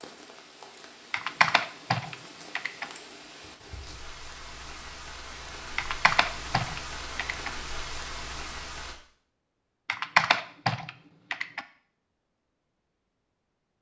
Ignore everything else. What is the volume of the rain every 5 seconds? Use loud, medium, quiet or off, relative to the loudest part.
medium, loud, off.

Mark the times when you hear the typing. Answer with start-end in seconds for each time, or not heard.
1.1-2.9, 5.8-7.5, 9.8-11.6.